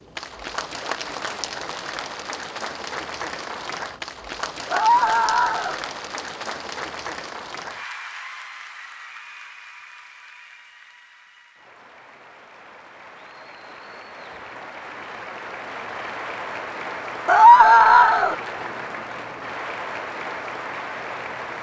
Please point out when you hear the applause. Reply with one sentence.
You can hear the applause from 0.0 to 21.5 s.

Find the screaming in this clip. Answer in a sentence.
You can hear the screaming from 4.7 to 5.8 s and from 17.2 to 18.4 s.